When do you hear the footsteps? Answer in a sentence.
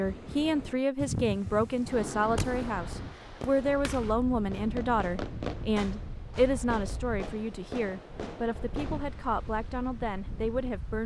The footsteps can't be heard in this clip.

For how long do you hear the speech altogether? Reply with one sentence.
You can hear the speech for 11 seconds altogether.